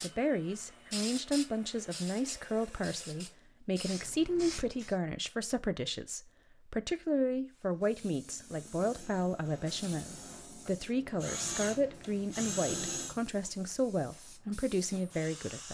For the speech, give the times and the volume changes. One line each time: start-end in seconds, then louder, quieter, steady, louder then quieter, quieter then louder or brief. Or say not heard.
0.0-15.6 steady.